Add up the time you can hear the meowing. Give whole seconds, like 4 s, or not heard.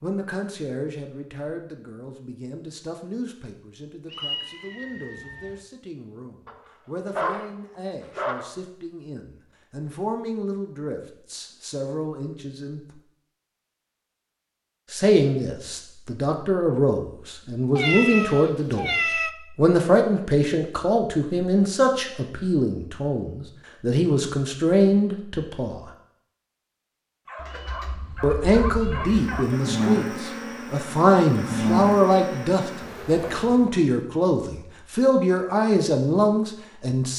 5 s.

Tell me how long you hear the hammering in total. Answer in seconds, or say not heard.
not heard.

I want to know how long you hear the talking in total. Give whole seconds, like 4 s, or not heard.
32 s.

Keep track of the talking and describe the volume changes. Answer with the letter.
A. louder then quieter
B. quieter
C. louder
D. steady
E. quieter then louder
C.